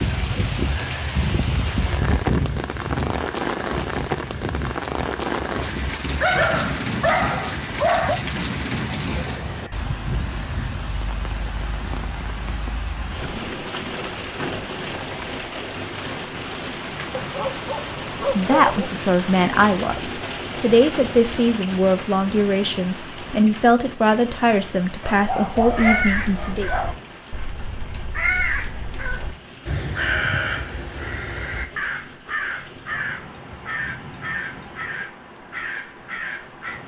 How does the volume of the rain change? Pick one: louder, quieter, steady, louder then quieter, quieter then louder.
quieter.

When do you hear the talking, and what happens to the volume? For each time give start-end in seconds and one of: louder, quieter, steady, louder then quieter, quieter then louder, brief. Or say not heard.
18.4-26.7 steady.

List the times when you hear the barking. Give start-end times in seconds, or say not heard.
6.2-8.2, 17.1-18.9, 25.0-26.9.